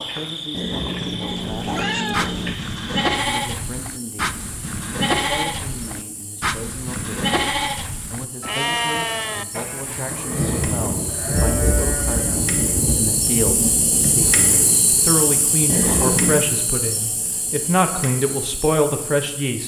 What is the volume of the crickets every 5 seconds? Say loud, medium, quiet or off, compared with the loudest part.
medium, quiet, loud, loud.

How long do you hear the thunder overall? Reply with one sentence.
The thunder can be heard for 4 seconds in total.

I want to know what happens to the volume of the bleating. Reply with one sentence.
The loudness of the bleating goes down.